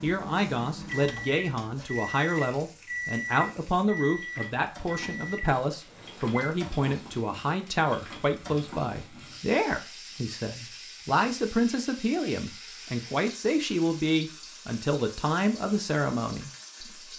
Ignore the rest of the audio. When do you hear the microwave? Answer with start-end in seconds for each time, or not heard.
0.0-6.7.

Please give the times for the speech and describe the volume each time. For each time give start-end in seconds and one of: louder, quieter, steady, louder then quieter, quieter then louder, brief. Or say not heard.
0.0-17.0 steady.